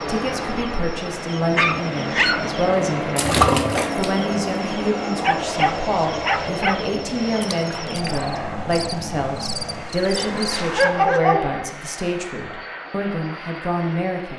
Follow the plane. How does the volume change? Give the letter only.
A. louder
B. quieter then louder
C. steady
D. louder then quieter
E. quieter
E.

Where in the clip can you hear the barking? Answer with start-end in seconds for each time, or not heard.
1.6-2.5, 5.2-6.8, 10.2-11.8.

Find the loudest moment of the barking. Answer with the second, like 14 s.
11 s.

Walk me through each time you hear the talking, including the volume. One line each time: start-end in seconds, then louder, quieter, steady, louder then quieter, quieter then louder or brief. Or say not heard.
0.1-14.3 steady.